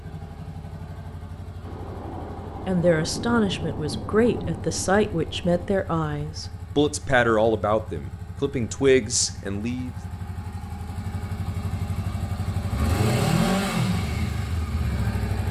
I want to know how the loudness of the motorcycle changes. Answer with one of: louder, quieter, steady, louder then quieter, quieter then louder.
louder.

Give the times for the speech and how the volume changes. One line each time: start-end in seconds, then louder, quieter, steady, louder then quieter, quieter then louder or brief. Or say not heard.
2.6-9.9 steady.